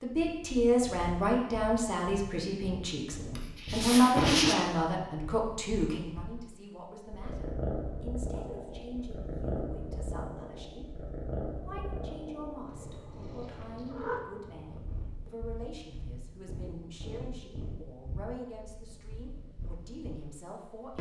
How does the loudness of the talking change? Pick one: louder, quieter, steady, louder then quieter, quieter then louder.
quieter.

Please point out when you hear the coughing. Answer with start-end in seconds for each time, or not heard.
3.4-4.5.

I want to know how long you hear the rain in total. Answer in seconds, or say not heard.
not heard.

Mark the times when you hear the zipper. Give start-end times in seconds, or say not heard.
not heard.